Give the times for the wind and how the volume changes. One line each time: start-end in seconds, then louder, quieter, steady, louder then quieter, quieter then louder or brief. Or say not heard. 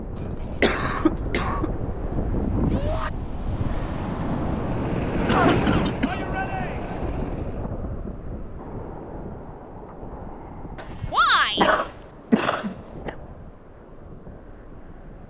0.0-15.2 quieter.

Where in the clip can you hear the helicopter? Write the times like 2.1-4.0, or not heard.
4.5-7.7.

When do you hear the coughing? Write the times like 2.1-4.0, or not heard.
0.5-1.7, 5.2-6.2, 10.8-13.1.